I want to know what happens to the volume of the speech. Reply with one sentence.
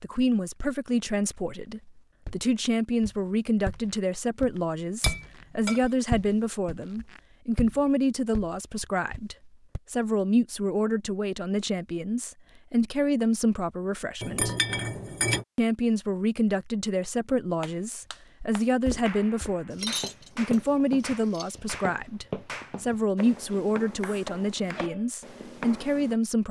The volume of the speech stays about the same.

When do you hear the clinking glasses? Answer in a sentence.
The clinking glasses can be heard from 5.0 to 5.8 s, from 14.2 to 15.4 s and from 19.7 to 21.6 s.